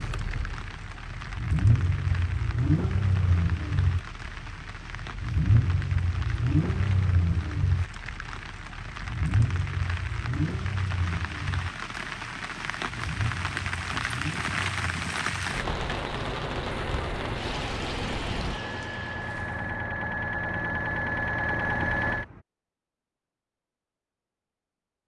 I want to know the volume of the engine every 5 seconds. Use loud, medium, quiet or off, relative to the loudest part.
loud, loud, medium, medium, loud.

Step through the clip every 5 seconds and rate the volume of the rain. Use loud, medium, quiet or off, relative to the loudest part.
medium, medium, loud, loud, off.